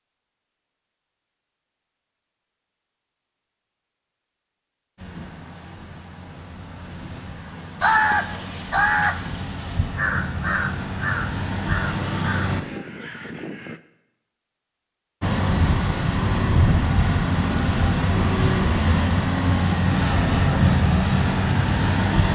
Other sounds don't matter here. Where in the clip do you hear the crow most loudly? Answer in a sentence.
The volume of the crow peaks at 8 seconds.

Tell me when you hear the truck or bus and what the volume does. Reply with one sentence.
You can hear the truck or bus from 5.0 to 12.7 s, getting louder; and from 15.2 to 22.3 s, at a steady volume.